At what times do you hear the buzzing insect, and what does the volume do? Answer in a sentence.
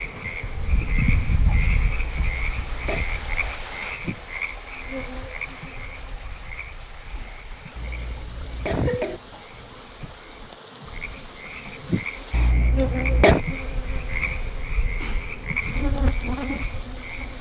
You can hear the buzzing insect from 0.0 to 17.3 s, getting quieter then louder.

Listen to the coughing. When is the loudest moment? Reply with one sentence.
The loudest moment of the coughing is at 13 seconds.